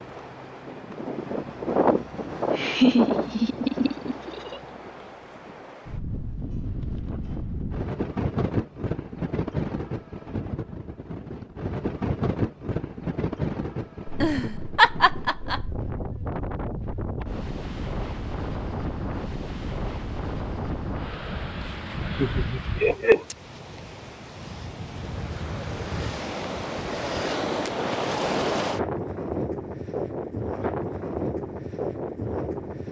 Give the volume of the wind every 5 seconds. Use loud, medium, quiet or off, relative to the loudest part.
loud, loud, loud, medium, medium, loud, loud.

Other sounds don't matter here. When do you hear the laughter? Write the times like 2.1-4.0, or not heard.
2.5-4.6, 14.1-15.7, 22.1-23.2.